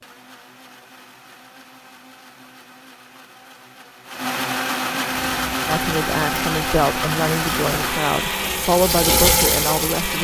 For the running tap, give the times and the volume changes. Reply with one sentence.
The running tap can be heard from 5.1 to 10.1 s, getting louder.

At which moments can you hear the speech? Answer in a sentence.
You can hear the speech from 5.7 to 10.1 s.